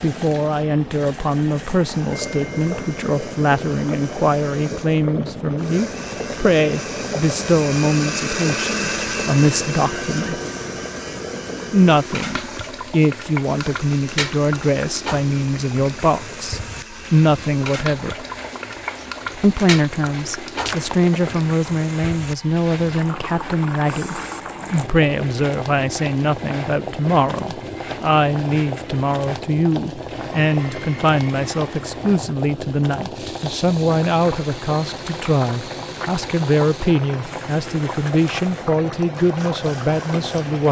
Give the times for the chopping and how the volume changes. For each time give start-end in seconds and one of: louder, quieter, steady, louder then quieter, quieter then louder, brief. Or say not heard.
not heard.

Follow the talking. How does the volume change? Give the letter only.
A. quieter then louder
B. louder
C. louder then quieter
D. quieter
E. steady
E.